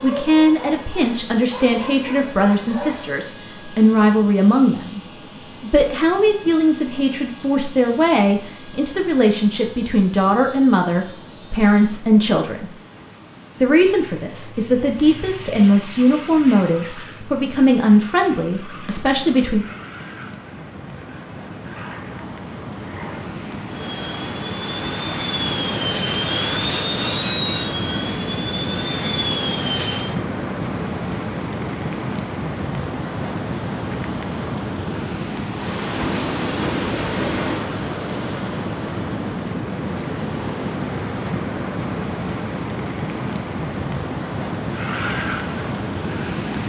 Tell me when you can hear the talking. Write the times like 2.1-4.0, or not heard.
0.0-12.8, 13.6-19.6.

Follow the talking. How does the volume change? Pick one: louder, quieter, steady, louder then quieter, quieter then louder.
steady.